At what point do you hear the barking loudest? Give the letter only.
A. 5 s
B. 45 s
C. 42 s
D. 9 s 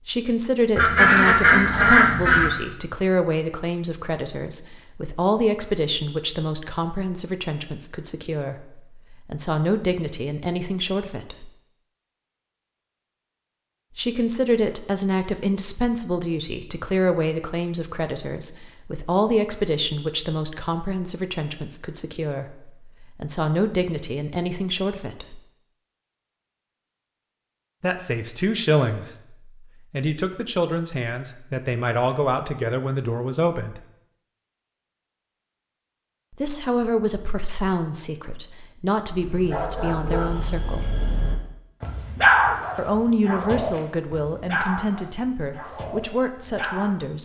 C.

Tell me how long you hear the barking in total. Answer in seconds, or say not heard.
8 s.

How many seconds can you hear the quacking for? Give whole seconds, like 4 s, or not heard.
2 s.